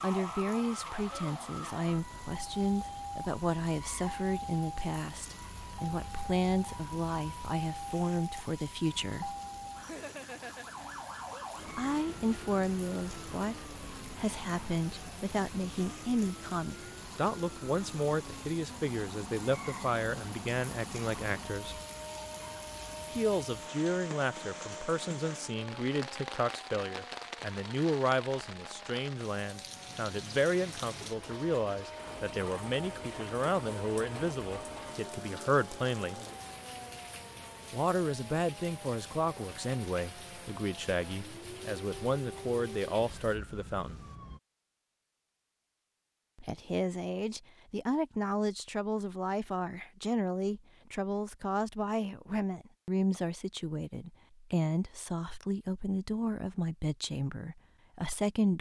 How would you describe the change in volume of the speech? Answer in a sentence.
The loudness of the speech stays about the same.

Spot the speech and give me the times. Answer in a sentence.
You can hear the speech from 0.0 to 9.3 s, from 11.8 to 21.8 s, from 23.1 to 36.2 s, from 37.7 to 44.0 s and from 46.4 to 58.5 s.